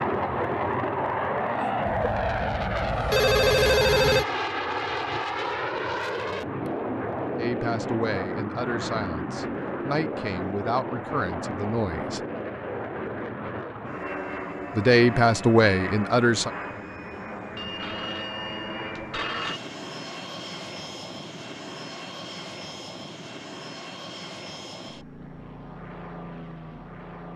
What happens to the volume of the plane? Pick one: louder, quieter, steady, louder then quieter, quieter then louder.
quieter.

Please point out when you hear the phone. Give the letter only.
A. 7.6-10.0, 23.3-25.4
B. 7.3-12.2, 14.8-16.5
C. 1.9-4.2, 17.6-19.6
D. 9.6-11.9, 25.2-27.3
C.